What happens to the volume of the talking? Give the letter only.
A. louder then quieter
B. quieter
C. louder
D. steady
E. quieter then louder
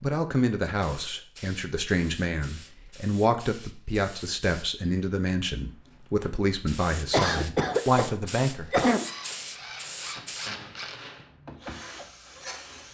D.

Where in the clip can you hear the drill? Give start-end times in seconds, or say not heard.
9.0-12.8.